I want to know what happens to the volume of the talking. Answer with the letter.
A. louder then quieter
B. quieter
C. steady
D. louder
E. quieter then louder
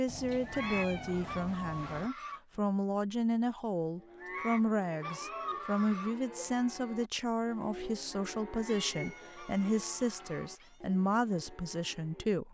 C.